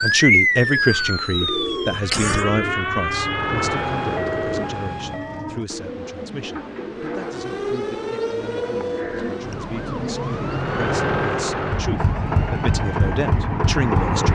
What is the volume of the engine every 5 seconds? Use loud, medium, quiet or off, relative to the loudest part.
medium, off, loud.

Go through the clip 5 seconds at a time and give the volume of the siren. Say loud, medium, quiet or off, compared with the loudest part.
loud, medium, medium.